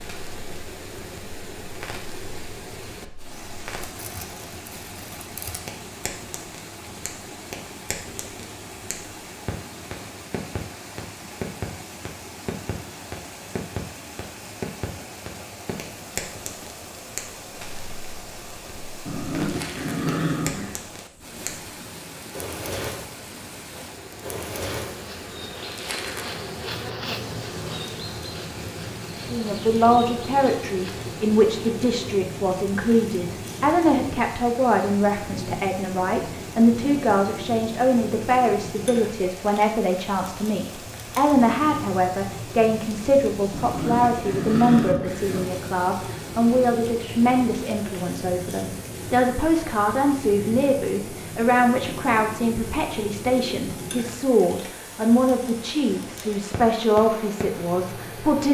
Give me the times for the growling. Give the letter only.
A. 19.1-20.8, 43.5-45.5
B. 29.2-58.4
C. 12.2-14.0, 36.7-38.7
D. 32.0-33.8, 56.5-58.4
A.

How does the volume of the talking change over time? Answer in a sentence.
The volume of the talking stays about the same.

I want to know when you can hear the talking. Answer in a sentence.
You can hear the talking from 29.2 to 58.4 s.